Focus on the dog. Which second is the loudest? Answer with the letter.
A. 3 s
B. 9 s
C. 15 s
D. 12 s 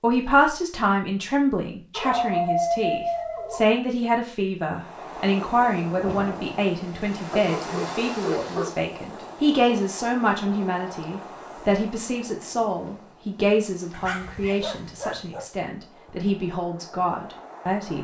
A.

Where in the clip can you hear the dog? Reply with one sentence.
You can hear the dog from 1.9 to 3.8 s, from 7.5 to 9.2 s and from 13.9 to 15.5 s.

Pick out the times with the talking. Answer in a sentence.
You can hear the talking from 0.0 to 17.9 s.